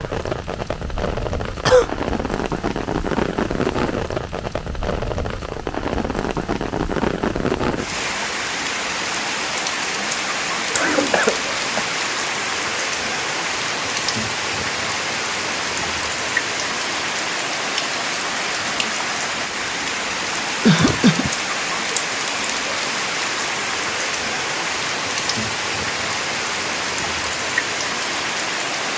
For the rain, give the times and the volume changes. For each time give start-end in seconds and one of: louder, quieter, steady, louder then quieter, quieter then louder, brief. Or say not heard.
0.0-28.9 steady.